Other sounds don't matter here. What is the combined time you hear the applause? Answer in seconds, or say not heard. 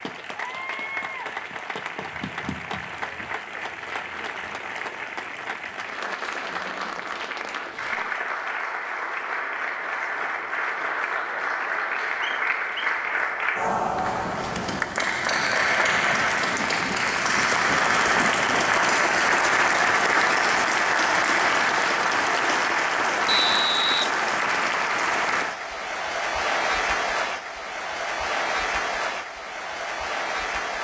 31 s.